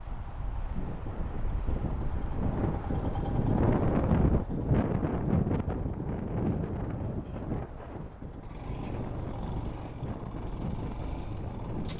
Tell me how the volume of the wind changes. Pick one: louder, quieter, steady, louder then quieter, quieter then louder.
louder then quieter.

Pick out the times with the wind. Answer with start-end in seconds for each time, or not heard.
0.0-11.9.